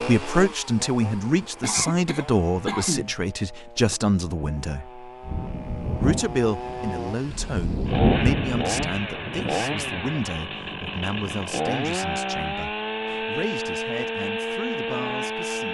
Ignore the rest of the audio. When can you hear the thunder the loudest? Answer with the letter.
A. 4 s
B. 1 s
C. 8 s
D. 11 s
C.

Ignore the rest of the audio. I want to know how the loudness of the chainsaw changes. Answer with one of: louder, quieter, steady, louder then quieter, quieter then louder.
louder.